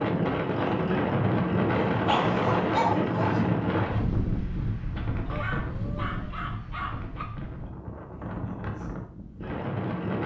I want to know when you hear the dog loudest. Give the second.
3 s.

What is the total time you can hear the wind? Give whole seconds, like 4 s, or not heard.
10 s.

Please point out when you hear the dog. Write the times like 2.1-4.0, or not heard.
1.9-3.4, 5.2-7.2.